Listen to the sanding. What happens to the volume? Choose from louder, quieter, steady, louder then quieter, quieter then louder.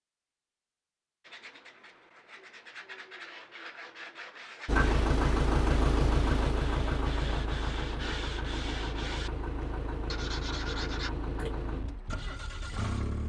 louder.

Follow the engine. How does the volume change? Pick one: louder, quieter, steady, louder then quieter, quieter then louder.
quieter.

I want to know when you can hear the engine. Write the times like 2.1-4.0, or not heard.
4.7-13.2.